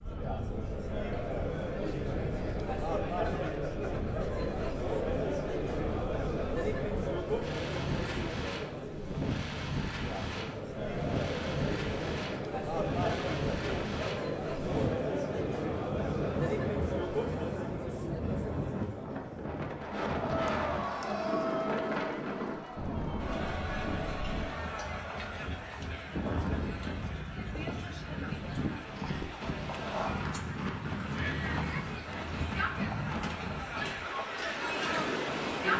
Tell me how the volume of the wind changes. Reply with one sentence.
The loudness of the wind goes up.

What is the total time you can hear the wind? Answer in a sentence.
The wind can be heard for 36 seconds in total.